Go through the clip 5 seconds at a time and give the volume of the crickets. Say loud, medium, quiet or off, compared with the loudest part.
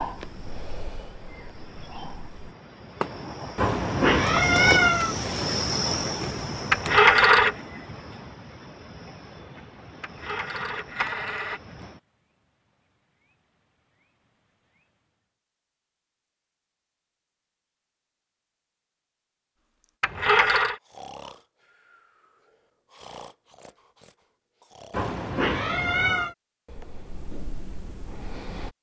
loud, loud, quiet, off, off, off.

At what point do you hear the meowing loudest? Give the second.
5 s.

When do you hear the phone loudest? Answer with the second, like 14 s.
7 s.